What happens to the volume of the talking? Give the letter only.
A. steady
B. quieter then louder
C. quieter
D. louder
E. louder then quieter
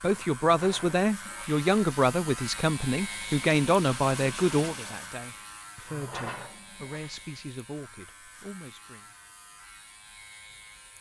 C.